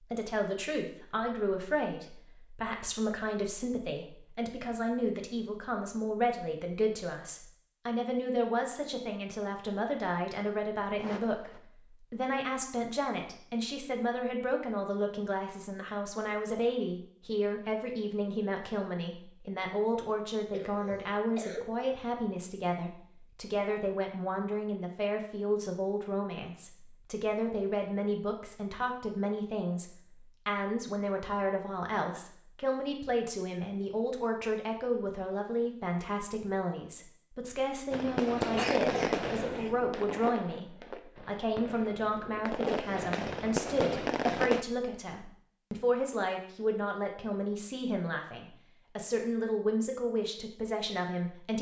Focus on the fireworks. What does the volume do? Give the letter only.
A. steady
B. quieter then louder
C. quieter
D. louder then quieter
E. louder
B.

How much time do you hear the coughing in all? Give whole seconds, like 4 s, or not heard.
4 s.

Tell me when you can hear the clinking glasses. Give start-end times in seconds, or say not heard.
not heard.